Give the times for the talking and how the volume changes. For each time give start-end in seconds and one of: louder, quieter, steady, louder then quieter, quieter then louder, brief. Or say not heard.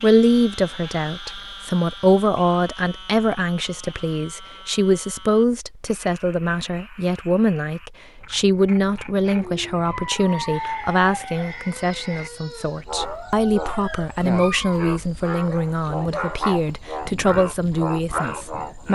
0.0-18.9 steady.